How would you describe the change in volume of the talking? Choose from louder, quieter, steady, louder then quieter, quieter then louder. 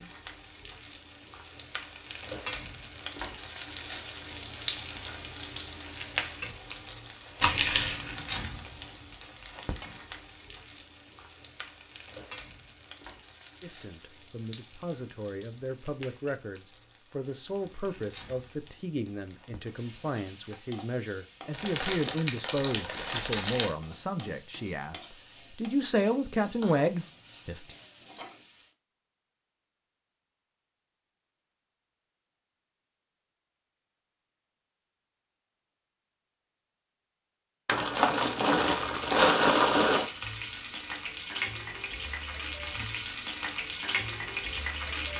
louder.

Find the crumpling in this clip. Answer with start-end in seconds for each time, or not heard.
7.4-8.0, 21.5-23.8, 37.6-40.1.